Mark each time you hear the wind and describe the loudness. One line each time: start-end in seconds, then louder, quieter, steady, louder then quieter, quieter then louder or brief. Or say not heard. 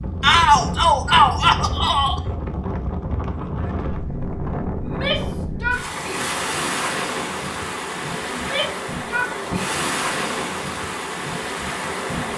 0.0-12.3 steady.